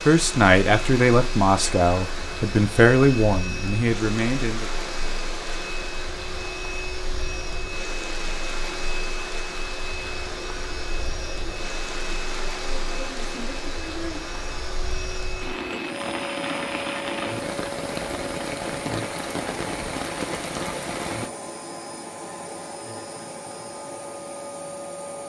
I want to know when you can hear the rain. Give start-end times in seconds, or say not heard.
0.0-21.3.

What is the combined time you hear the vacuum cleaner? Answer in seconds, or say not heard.
25 s.